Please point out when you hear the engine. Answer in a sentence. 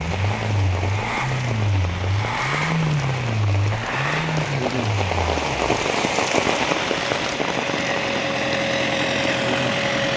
The engine can be heard from 0.0 to 10.1 s.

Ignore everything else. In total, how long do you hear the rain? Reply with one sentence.
The rain can be heard for 10 seconds in total.